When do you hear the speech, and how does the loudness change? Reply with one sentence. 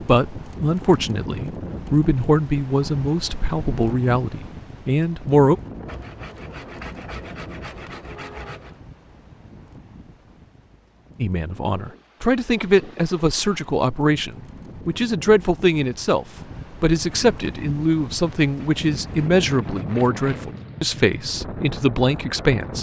You can hear the speech from 0.0 to 5.5 s, at a steady volume; and from 11.2 to 22.7 s, at a steady volume.